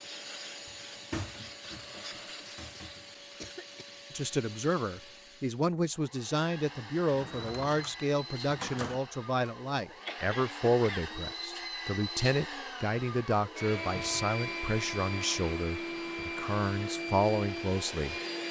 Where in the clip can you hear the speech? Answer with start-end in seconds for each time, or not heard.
4.1-18.1.